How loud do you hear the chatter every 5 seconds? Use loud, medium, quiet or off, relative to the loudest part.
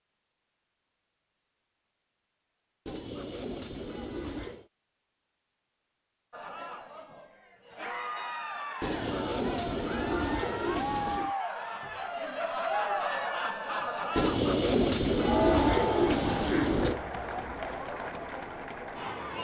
off, medium, loud, loud.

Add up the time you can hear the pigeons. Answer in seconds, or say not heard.
7 s.